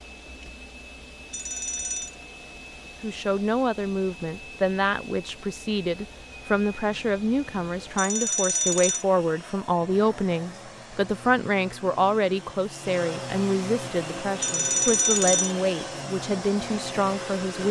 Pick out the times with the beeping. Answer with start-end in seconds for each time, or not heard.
1.3-2.1, 8.0-9.1, 14.4-15.6.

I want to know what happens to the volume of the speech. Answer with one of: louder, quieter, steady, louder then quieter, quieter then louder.
steady.